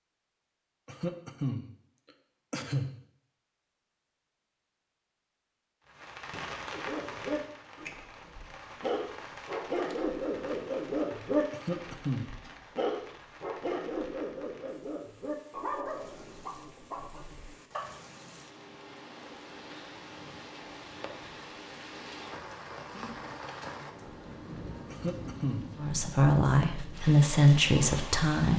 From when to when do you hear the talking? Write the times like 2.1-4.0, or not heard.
25.8-28.5.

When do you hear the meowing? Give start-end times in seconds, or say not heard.
not heard.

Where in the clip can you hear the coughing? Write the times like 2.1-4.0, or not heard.
0.8-1.7, 2.5-3.0, 11.5-12.3, 24.9-25.7.